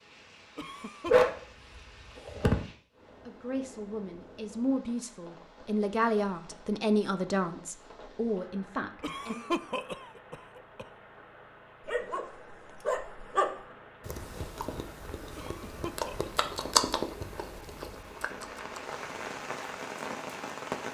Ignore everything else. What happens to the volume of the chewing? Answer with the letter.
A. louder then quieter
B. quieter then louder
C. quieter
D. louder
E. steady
A.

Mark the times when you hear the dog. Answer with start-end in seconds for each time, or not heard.
1.1-2.6, 11.8-13.5.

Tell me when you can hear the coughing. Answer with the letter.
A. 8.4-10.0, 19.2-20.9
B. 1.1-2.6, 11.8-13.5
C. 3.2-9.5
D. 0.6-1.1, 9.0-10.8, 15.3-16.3
D.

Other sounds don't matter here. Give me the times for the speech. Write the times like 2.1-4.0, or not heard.
3.2-9.5.